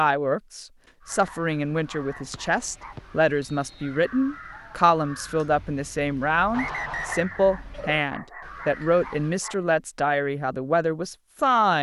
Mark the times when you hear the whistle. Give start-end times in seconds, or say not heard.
2.3-3.9, 6.5-7.2.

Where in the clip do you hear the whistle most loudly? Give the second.
7 s.